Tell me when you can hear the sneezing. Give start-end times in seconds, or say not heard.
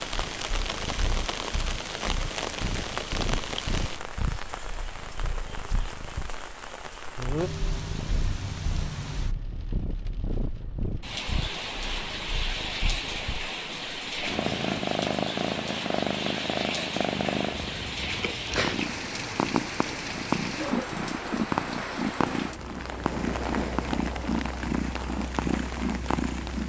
not heard.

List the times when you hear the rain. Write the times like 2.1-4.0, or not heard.
0.0-26.6.